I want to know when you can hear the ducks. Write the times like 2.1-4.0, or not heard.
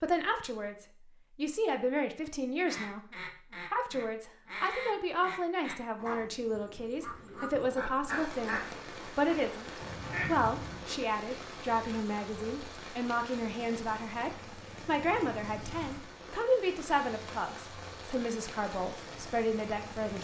2.6-10.8.